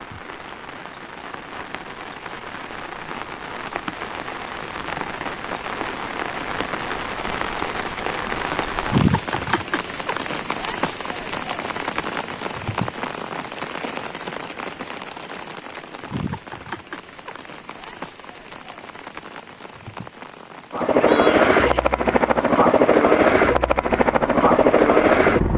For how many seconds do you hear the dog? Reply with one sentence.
You can't hear the dog here.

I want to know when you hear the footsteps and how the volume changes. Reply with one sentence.
The footsteps can't be heard in this clip.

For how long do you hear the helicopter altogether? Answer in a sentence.
The helicopter can be heard for 5 seconds in total.